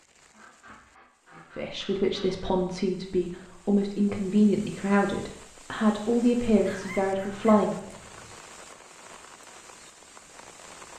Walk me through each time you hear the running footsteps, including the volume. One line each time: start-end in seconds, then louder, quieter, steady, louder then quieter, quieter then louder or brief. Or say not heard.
not heard.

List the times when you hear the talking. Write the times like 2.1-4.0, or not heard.
1.6-7.9.